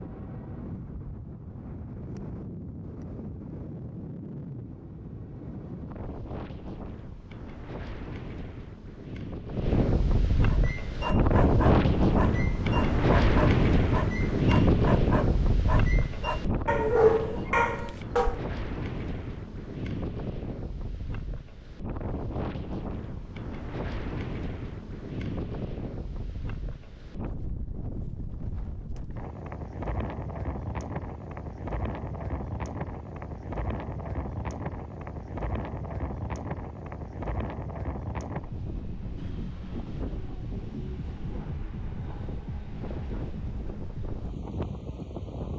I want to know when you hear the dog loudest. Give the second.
17 s.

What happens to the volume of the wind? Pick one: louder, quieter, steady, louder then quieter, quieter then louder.
louder then quieter.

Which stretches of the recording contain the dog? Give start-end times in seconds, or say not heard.
10.4-18.4.